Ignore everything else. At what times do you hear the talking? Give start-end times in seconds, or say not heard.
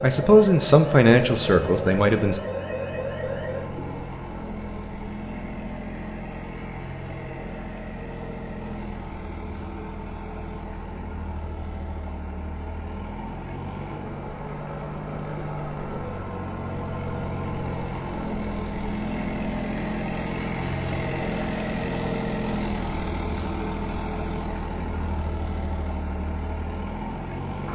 0.0-2.4.